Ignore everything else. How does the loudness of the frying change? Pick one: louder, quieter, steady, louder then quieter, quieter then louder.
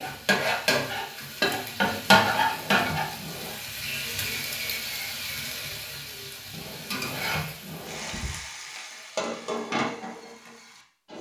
quieter.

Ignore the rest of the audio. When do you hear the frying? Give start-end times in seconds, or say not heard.
0.0-11.1.